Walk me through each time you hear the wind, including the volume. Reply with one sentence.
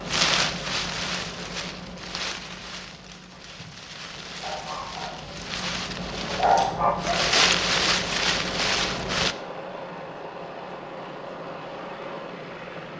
The wind can be heard from 0.0 to 9.3 s, getting quieter then louder.